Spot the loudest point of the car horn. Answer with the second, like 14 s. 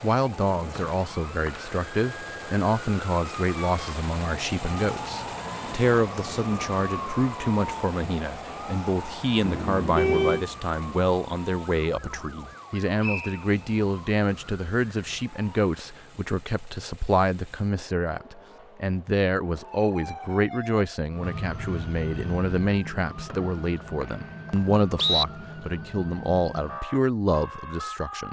10 s.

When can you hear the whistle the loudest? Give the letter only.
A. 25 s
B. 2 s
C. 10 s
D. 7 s
A.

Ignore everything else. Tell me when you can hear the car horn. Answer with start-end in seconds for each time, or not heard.
9.4-10.4, 21.2-22.6.